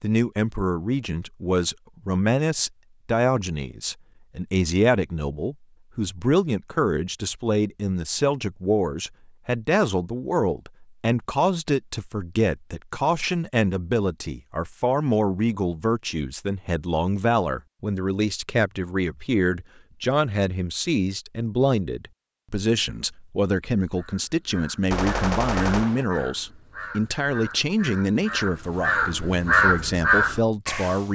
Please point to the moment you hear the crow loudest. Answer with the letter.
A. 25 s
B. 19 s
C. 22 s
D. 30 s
D.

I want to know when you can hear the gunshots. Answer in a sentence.
You can hear the gunshots from 24.9 to 26.1 s.